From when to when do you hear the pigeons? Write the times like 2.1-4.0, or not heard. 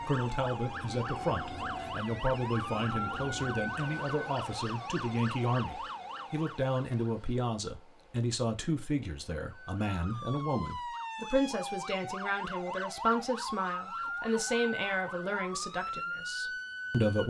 not heard.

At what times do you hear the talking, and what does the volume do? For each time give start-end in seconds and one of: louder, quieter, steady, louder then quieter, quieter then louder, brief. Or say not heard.
0.0-17.2 steady.